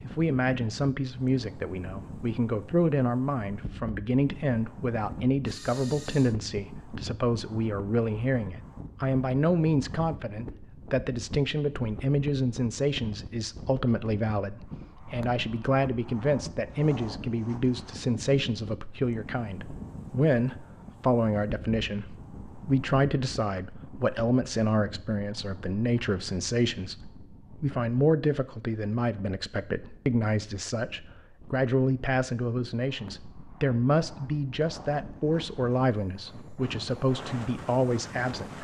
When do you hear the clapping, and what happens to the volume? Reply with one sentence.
You can't hear the clapping here.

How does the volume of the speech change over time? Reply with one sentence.
The loudness of the speech stays about the same.